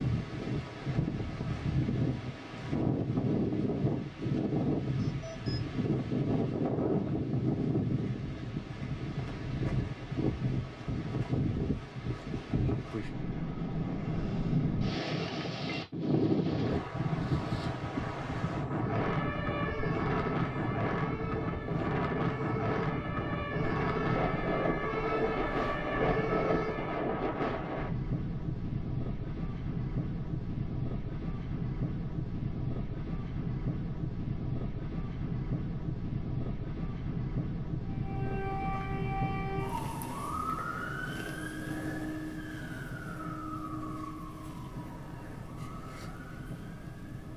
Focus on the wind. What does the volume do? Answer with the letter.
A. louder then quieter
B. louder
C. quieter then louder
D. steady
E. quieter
E.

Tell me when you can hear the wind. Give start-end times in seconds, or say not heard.
0.0-47.3.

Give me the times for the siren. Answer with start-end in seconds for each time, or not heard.
18.7-27.1, 37.9-47.3.